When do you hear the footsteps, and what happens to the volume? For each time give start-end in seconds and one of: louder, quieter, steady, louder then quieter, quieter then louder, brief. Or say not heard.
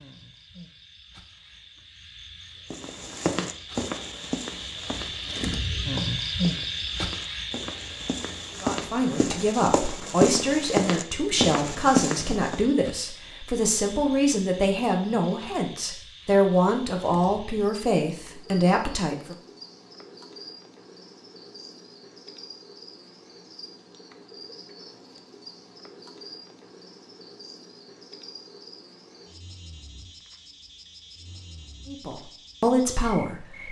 2.7-12.6 quieter then louder.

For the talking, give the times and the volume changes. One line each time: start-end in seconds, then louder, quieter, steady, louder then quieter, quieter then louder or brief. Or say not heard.
8.6-19.4 steady
31.9-33.6 brief.